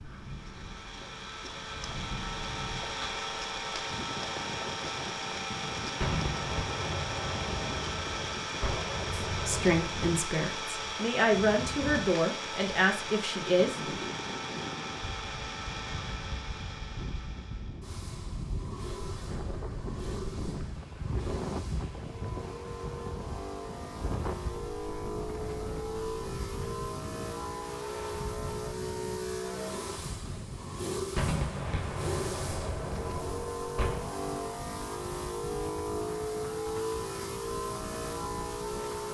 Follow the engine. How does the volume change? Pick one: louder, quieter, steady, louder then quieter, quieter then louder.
quieter then louder.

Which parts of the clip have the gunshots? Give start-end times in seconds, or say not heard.
6.0-10.0, 31.1-34.1.